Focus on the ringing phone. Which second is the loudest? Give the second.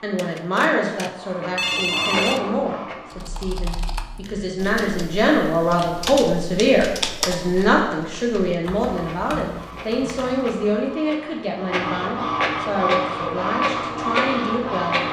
2 s.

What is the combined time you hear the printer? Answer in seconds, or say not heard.
10 s.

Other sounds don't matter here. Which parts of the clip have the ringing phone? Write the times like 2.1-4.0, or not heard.
0.1-2.5.